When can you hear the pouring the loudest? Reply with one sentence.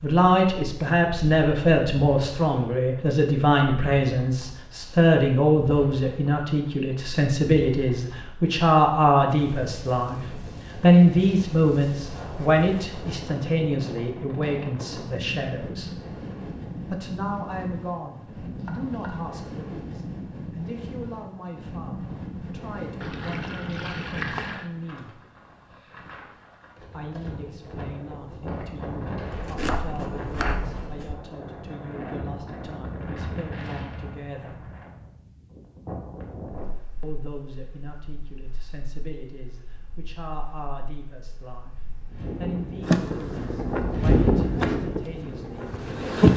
The volume of the pouring peaks at 24 seconds.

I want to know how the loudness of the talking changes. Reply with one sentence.
The loudness of the talking goes down.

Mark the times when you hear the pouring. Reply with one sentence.
The pouring can be heard from 23.0 to 24.7 s.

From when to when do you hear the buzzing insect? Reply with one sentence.
The buzzing insect can be heard from 42.8 to 44.7 s and from 45.7 to 46.3 s.